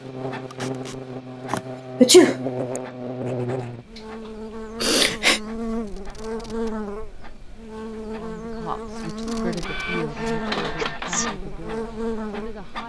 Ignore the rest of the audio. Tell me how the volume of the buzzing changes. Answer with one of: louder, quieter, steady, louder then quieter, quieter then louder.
steady.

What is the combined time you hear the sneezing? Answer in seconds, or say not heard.
4 s.